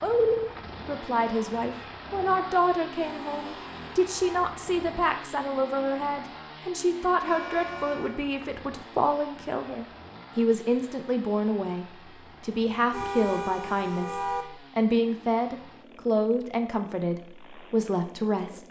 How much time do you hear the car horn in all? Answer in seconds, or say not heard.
4 s.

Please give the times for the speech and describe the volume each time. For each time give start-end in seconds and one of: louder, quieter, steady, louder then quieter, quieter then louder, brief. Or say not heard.
0.0-18.6 steady.